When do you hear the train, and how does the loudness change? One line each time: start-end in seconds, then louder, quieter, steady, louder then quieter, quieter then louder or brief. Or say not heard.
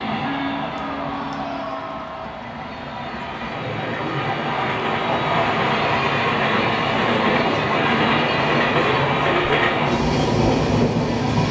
0.0-11.4 louder.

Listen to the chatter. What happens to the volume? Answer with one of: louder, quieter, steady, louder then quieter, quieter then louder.
louder.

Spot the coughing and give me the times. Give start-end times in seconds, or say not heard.
not heard.